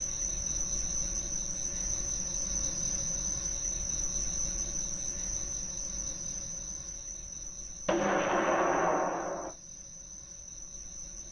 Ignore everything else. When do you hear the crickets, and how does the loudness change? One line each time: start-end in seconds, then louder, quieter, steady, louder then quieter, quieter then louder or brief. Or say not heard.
0.0-11.2 quieter.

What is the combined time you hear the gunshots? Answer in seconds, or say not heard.
2 s.